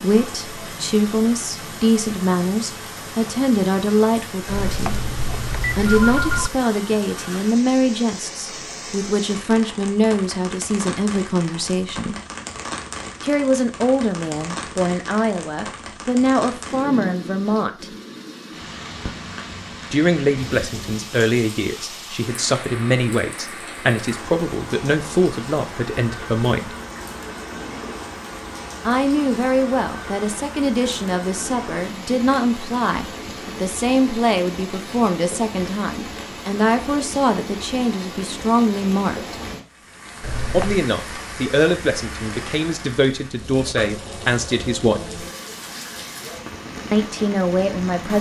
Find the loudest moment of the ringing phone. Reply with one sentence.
The volume of the ringing phone peaks at 6 seconds.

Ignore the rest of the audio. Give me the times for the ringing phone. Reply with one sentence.
You can hear the ringing phone from 4.5 to 6.5 s and from 40.2 to 40.9 s.